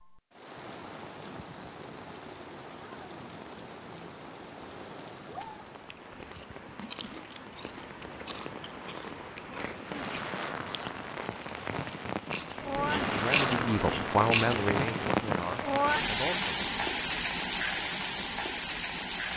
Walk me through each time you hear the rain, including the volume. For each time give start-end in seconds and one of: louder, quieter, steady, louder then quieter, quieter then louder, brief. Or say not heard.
0.0-19.3 louder.